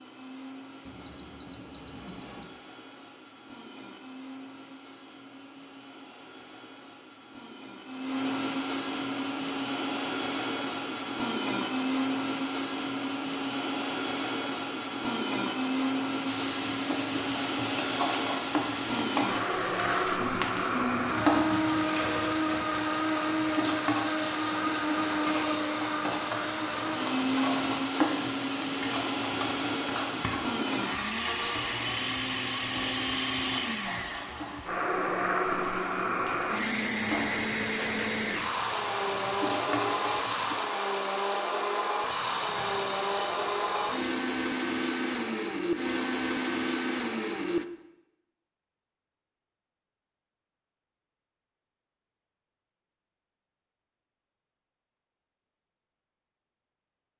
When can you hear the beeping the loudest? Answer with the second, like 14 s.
43 s.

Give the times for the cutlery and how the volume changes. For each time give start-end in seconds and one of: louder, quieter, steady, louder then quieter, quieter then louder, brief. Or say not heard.
not heard.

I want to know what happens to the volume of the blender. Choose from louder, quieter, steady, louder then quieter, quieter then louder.
louder.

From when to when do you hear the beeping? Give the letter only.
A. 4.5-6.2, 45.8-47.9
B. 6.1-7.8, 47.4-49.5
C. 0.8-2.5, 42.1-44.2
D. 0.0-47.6
C.